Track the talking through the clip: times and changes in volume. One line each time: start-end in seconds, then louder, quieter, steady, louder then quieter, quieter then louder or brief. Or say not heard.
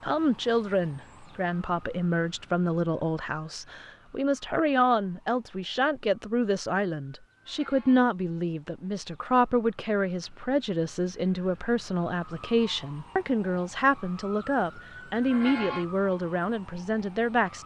0.0-17.6 steady.